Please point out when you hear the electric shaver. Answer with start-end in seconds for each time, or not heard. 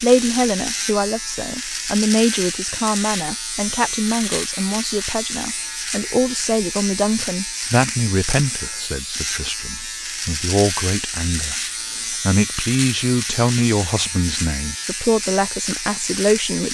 0.0-16.6.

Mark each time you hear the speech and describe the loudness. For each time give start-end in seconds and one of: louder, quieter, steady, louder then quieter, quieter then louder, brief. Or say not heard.
0.0-16.6 steady.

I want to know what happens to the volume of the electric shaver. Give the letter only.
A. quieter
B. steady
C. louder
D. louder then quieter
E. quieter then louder
B.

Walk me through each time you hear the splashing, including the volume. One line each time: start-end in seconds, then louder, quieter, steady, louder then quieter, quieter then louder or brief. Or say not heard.
not heard.